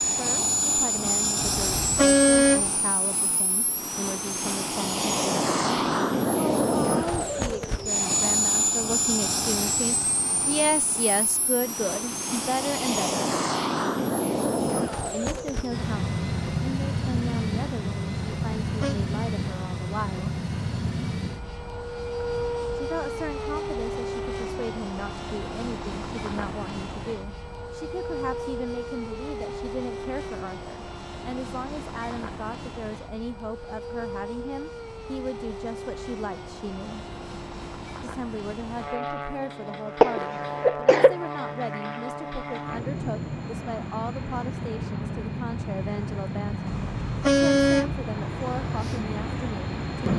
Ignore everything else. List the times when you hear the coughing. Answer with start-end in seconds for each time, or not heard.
40.0-41.1.